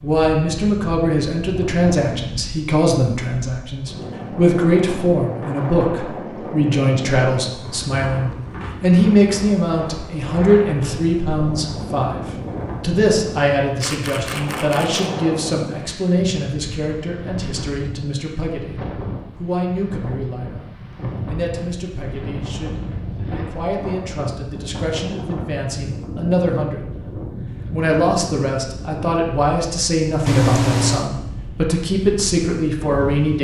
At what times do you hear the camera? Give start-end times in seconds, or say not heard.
13.8-15.1, 30.2-31.1.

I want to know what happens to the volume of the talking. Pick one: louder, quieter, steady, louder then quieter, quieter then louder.
quieter then louder.